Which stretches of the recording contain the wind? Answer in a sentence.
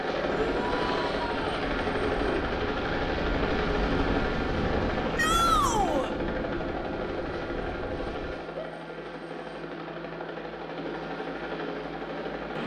The wind can be heard from 0.1 to 8.3 s.